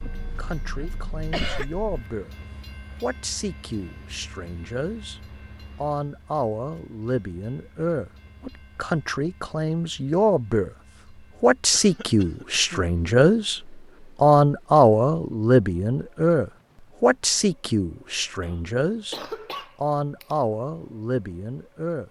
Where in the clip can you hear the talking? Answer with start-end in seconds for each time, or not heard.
0.0-2.3, 3.0-5.2, 5.8-10.7, 11.4-19.2, 19.8-22.0.